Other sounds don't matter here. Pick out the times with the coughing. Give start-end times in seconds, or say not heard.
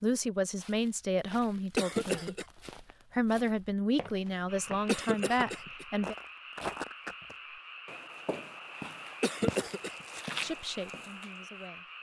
1.8-2.5, 4.8-5.8, 9.2-9.9.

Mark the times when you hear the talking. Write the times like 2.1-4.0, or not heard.
0.0-2.4, 3.1-6.2, 10.4-11.9.